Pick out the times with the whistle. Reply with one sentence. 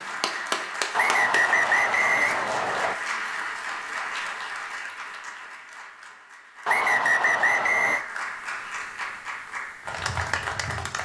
The whistle can be heard from 0.9 to 3.0 s and from 6.7 to 8.1 s.